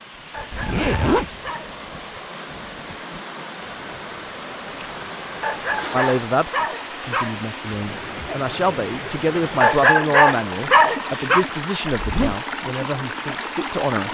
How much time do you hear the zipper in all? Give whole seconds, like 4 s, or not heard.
2 s.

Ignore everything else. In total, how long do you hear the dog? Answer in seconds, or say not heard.
5 s.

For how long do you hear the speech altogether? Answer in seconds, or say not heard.
8 s.